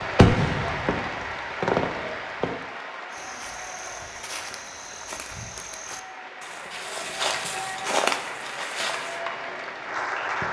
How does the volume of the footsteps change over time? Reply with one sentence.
The loudness of the footsteps goes up.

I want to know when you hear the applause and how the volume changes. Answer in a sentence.
You can hear the applause from 0.0 to 10.4 s, getting quieter then louder.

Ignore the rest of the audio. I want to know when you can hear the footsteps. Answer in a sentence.
The footsteps can be heard from 3.1 to 9.2 s.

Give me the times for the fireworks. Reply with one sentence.
The fireworks can be heard from 0.0 to 2.6 s.